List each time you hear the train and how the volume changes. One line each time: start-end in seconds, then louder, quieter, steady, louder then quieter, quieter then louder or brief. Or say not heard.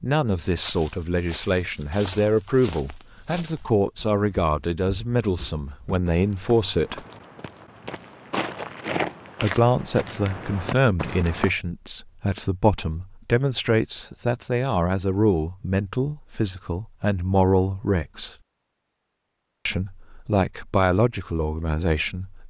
not heard.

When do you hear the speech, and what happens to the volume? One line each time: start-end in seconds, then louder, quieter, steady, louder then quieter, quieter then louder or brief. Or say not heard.
0.0-7.0 steady
9.4-18.4 steady
19.6-22.4 brief.